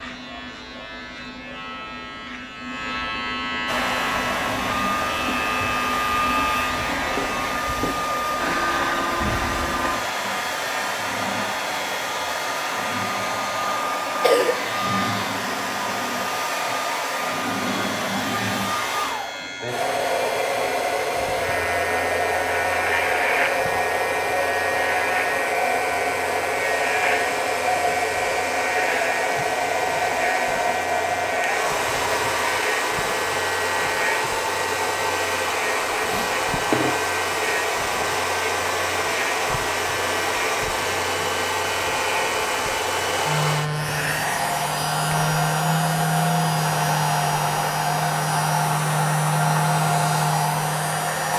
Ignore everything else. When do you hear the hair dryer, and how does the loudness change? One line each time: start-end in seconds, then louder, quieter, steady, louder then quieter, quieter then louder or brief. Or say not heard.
3.6-51.3 steady.